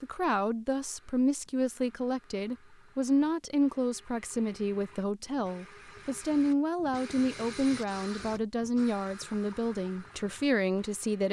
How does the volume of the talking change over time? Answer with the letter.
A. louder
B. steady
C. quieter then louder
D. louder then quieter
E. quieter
B.